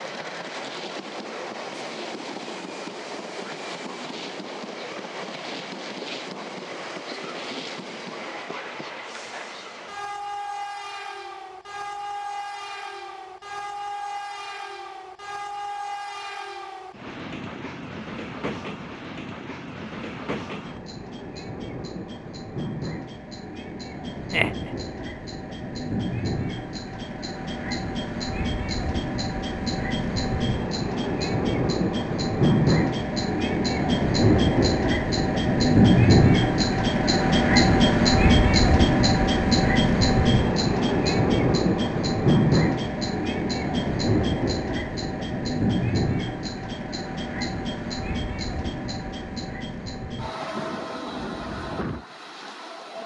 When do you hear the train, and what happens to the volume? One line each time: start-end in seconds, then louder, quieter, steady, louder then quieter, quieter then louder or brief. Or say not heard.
0.0-53.0 louder then quieter.